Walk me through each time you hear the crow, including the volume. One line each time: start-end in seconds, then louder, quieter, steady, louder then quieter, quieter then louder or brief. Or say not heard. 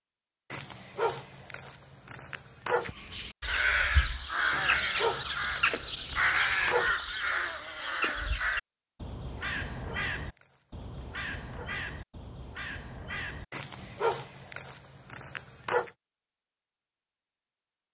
2.8-14.1 quieter.